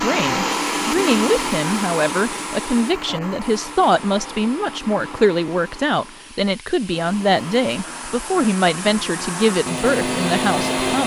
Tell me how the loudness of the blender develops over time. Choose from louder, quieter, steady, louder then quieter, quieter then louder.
quieter then louder.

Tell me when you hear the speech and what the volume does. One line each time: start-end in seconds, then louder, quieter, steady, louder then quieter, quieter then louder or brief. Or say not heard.
0.0-11.0 steady.